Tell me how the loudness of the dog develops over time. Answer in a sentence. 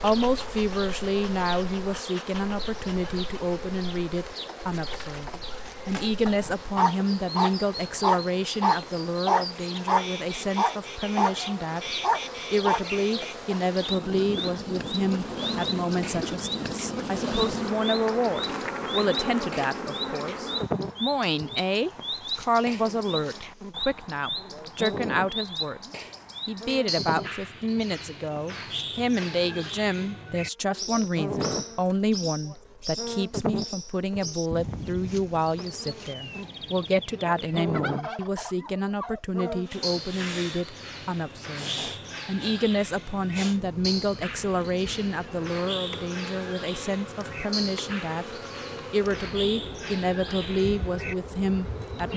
The loudness of the dog stays about the same.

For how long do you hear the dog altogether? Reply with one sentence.
You can hear the dog for 7 seconds altogether.